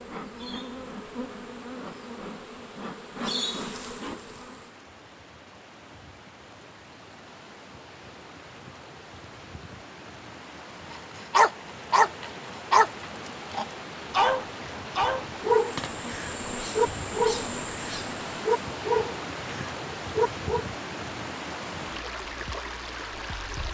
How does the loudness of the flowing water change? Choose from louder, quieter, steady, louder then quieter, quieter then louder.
louder.